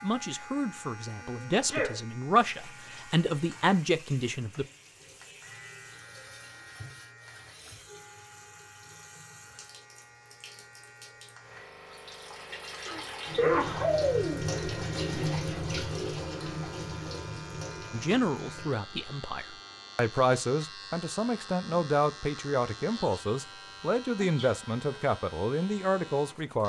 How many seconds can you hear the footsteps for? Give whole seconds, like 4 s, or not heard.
not heard.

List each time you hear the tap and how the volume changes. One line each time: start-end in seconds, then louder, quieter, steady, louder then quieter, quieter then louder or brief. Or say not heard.
2.4-18.7 louder.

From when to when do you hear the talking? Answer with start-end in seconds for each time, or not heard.
0.0-4.7, 17.9-26.6.